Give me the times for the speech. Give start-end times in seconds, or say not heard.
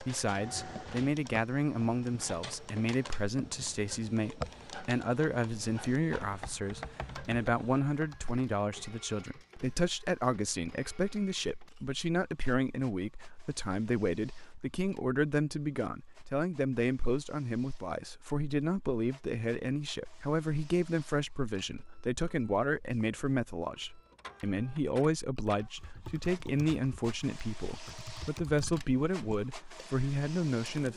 0.0-30.9.